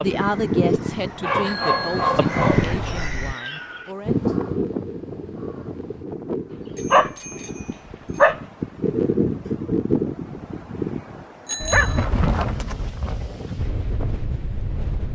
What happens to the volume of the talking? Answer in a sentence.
The volume of the talking goes down.